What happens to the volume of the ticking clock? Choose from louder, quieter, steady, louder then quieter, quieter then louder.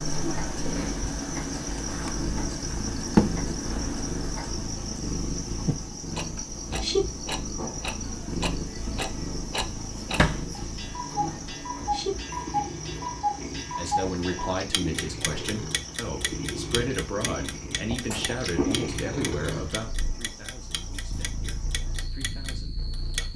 louder then quieter.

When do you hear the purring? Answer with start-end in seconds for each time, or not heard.
0.0-23.3.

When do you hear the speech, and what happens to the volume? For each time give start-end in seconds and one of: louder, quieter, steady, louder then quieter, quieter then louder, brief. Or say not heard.
13.8-23.3 quieter.